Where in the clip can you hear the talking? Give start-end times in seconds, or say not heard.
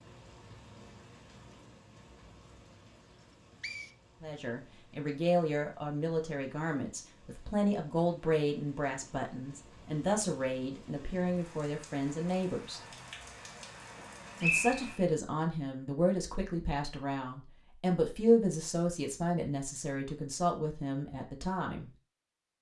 4.2-12.8, 14.4-21.9.